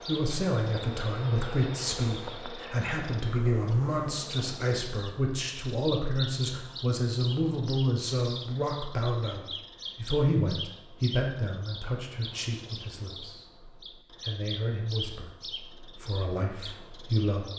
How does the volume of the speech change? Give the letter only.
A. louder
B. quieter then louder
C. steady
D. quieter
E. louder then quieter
D.